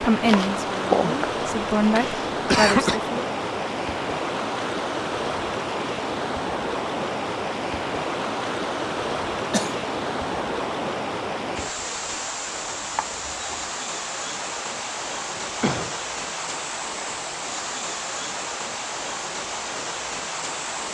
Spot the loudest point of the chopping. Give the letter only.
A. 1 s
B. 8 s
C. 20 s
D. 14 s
A.